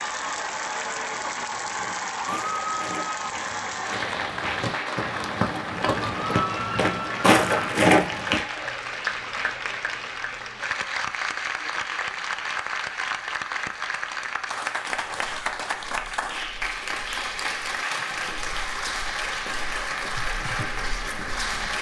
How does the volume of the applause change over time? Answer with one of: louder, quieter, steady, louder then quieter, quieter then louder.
steady.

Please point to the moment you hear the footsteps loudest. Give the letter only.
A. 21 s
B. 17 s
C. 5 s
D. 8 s
D.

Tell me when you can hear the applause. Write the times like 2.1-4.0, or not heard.
0.0-21.7.